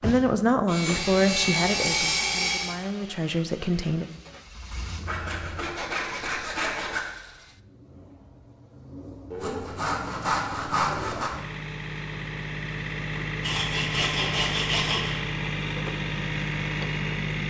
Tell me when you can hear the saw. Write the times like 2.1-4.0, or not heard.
0.7-2.8, 5.0-7.0, 9.3-11.3, 13.4-15.2.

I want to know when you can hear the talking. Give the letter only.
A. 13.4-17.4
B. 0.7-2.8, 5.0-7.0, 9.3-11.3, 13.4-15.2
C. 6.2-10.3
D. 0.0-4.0
D.